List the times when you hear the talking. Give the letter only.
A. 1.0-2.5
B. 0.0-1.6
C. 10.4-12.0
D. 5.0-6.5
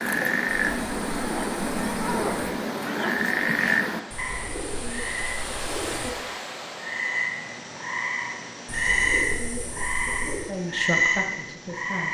C.